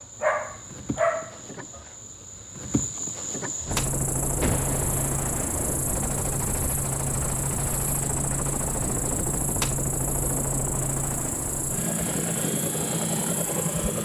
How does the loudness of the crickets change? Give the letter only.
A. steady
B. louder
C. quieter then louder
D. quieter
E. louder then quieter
A.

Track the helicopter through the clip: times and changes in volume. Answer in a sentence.
The helicopter can be heard from 3.6 to 14.0 s, at a steady volume.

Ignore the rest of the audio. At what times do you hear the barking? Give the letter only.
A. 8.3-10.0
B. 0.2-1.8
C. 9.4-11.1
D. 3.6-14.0
B.